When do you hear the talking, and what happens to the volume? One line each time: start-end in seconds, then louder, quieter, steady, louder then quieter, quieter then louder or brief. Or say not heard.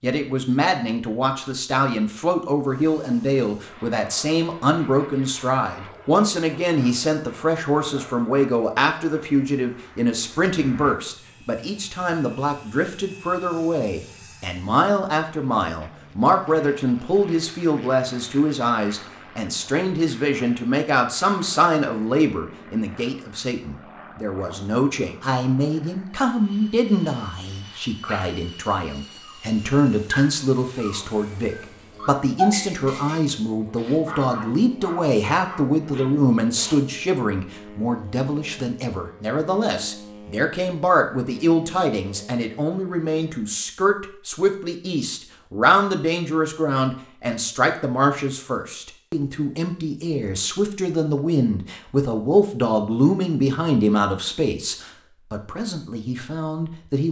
0.0-57.0 steady.